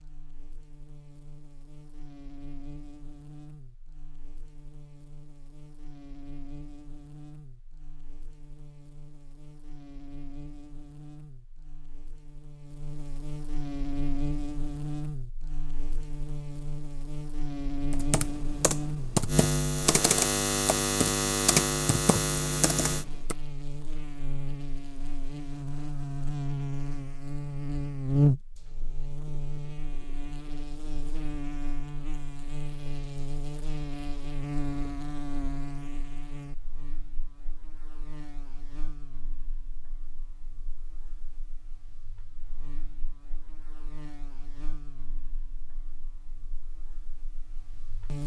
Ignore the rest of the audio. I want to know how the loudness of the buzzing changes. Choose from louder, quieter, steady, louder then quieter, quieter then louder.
louder then quieter.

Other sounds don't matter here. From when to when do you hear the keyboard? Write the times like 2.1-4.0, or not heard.
17.9-23.4.